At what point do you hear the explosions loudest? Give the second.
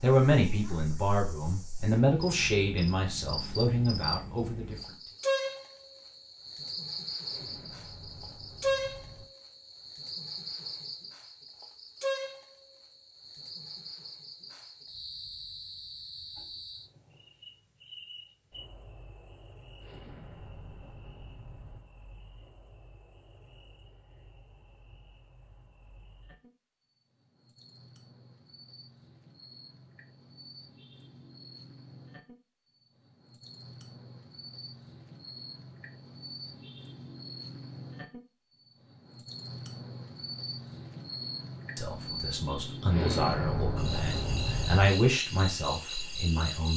43 s.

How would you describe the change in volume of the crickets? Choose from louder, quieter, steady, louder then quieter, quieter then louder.
quieter then louder.